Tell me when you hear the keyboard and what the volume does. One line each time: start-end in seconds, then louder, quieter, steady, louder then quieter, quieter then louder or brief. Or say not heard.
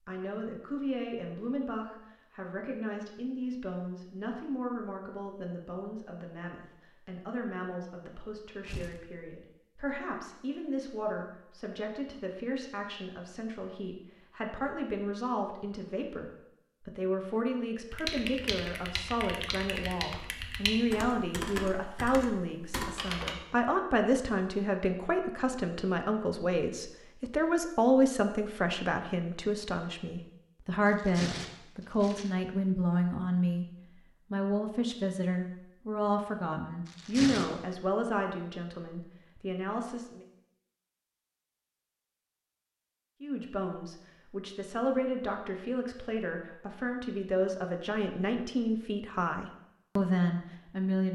17.9-23.4 steady.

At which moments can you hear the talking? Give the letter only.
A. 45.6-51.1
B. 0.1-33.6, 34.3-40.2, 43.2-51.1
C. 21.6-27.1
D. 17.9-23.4
B.